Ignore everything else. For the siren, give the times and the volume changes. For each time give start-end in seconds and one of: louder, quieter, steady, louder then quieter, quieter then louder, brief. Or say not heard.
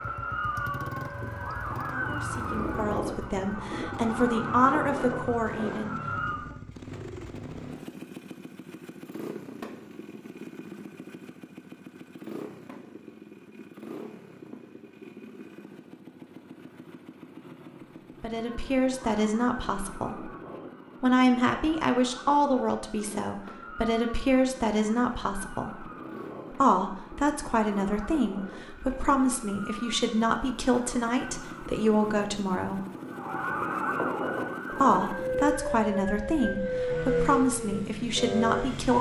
0.0-6.5 steady
18.4-38.9 louder.